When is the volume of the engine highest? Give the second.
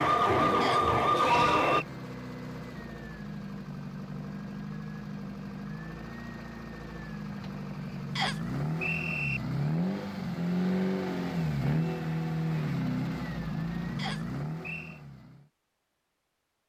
11 s.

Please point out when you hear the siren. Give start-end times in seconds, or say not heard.
0.0-1.9.